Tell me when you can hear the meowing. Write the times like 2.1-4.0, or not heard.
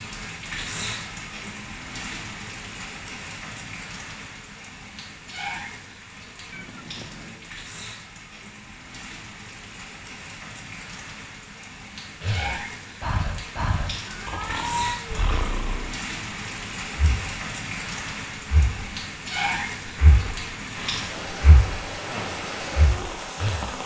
6.5-7.5, 14.1-15.2.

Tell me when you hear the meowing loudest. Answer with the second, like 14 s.
15 s.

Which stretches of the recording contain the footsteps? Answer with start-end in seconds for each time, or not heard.
not heard.